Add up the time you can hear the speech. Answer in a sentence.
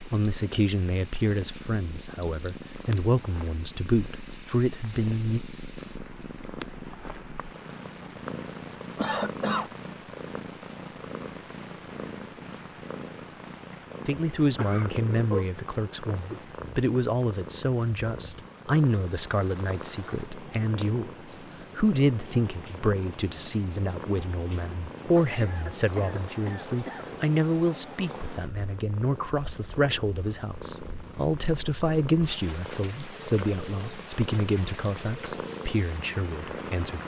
You can hear the speech for 28 seconds altogether.